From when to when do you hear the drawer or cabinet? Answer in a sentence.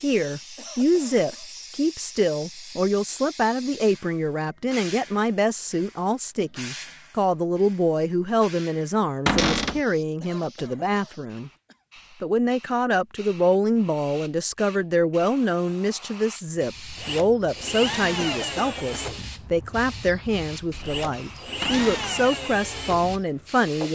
You can hear the drawer or cabinet from 9.2 to 9.8 s and from 21.6 to 22.1 s.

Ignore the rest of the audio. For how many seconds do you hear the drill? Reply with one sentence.
The drill can be heard for 7 seconds in total.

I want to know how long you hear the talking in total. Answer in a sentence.
You can hear the talking for 23 seconds altogether.